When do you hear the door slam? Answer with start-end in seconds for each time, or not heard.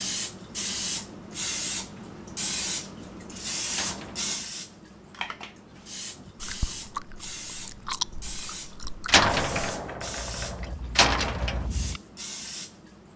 3.7-4.3, 9.1-11.7.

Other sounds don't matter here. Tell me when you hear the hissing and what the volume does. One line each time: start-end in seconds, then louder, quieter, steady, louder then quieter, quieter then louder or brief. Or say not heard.
0.0-13.1 quieter.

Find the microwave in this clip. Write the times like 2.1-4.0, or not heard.
not heard.